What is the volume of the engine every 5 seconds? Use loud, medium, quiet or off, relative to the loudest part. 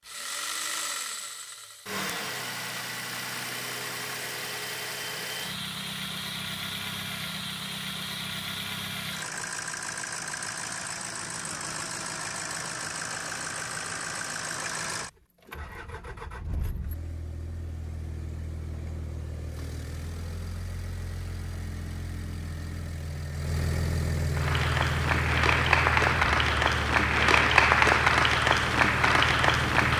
loud, loud, loud, medium, loud, loud.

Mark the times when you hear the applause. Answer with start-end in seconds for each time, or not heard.
24.4-29.9.